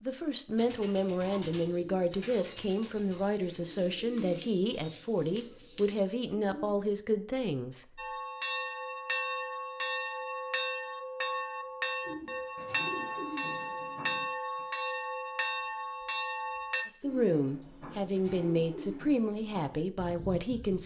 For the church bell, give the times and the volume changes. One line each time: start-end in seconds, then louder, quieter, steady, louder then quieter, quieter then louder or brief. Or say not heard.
8.0-16.9 steady.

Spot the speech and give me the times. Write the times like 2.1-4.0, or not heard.
0.0-7.8, 17.0-20.8.